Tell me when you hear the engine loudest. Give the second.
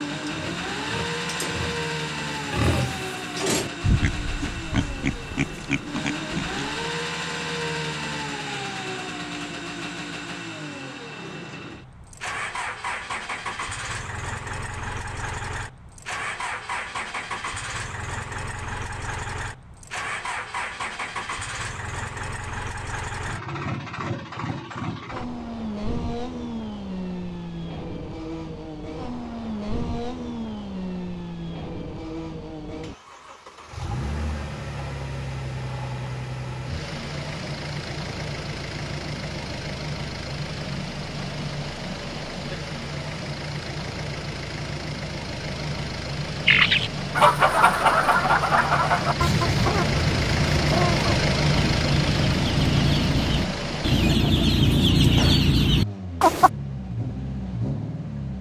51 s.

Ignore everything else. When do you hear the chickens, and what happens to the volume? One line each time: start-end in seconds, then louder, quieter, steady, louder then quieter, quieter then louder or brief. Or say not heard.
46.5-56.5 quieter then louder.